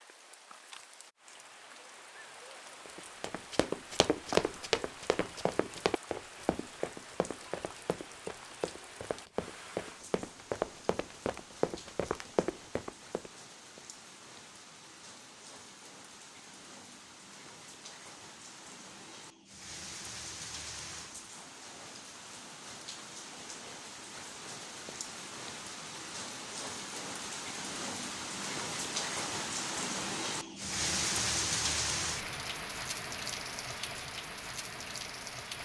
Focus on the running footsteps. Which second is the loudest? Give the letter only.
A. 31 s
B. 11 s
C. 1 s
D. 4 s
D.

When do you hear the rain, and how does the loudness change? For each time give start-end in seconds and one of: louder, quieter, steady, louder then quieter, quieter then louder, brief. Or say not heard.
0.0-35.6 louder.